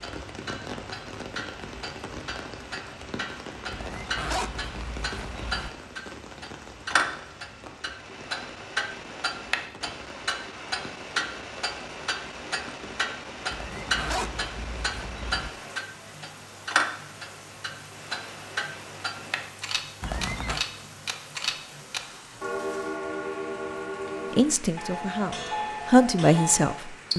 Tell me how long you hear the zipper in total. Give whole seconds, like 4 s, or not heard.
5 s.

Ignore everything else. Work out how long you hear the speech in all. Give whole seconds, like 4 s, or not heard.
3 s.